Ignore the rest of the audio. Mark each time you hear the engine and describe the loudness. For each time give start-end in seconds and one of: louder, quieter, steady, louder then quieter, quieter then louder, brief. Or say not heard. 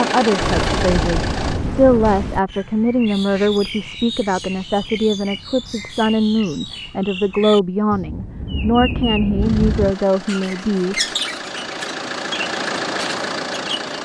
0.0-1.6 brief
9.3-14.0 louder.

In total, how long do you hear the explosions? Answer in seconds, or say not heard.
2 s.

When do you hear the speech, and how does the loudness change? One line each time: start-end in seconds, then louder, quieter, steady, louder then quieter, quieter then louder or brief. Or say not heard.
0.0-11.0 steady.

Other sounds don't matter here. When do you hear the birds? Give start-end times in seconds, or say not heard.
2.5-13.8.